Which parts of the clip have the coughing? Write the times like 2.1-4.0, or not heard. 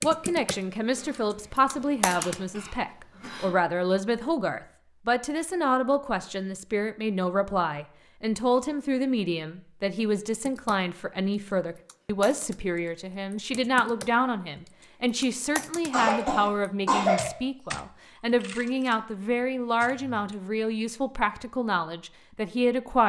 0.9-3.5, 15.9-17.3.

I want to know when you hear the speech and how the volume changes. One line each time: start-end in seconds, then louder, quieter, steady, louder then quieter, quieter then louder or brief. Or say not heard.
0.0-23.0 steady.